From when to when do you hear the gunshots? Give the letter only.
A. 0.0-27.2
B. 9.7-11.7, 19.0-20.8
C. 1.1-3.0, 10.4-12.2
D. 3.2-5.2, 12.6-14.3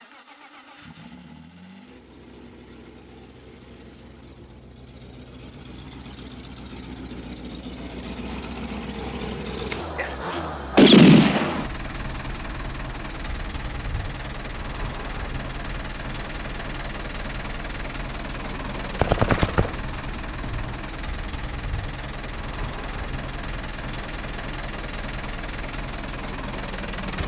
B.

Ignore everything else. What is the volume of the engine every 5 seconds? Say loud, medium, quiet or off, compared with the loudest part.
quiet, loud, loud, loud, loud, loud.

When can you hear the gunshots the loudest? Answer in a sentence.
The volume of the gunshots peaks at 11 seconds.